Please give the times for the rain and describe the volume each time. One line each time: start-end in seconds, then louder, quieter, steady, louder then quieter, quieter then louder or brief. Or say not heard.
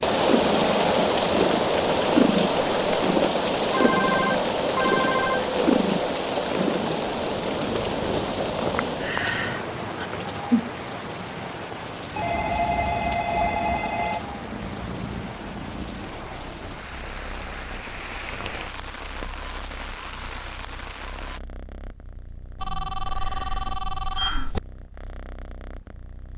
0.0-21.4 quieter.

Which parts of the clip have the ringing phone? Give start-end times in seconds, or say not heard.
3.7-5.5, 12.2-14.2, 22.6-24.6.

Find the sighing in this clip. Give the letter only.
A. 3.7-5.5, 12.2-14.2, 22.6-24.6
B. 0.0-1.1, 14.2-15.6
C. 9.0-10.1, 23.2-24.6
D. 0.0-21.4
C.